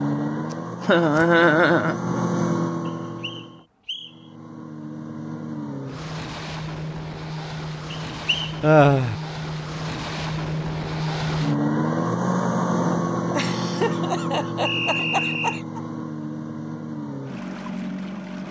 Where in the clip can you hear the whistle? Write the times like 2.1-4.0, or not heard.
2.9-4.2, 7.9-8.6, 14.7-15.6.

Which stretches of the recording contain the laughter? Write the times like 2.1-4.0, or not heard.
0.8-2.2, 8.6-9.2, 13.3-15.8.